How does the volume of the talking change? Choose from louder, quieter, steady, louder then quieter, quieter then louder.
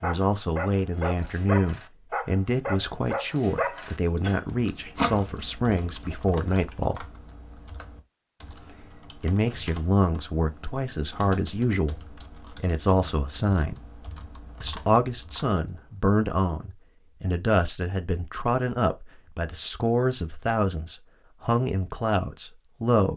steady.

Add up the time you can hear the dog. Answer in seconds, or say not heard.
7 s.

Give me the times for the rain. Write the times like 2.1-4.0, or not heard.
not heard.